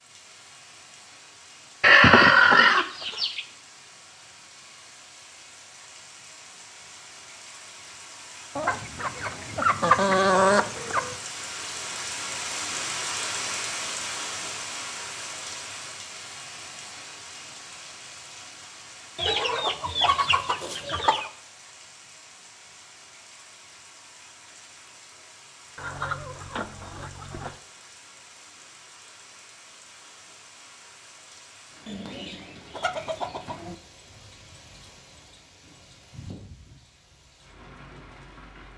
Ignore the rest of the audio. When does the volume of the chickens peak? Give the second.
2 s.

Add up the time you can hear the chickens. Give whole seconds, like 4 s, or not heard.
10 s.